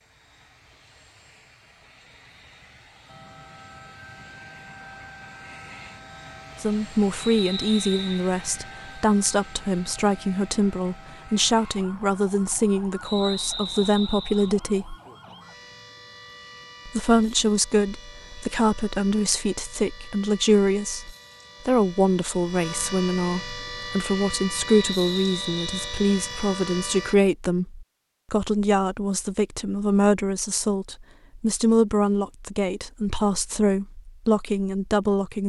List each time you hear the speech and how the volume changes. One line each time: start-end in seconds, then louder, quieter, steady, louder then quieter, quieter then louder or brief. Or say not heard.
6.6-14.9 steady
16.9-35.4 steady.